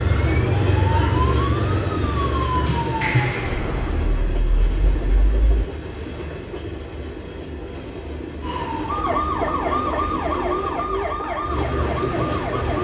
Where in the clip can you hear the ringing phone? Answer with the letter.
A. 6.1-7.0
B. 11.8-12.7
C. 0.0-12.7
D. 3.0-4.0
D.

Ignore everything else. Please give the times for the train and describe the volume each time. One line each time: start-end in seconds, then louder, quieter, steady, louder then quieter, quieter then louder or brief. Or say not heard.
0.0-12.7 quieter.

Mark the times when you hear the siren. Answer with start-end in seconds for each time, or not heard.
0.0-5.7, 8.4-12.7.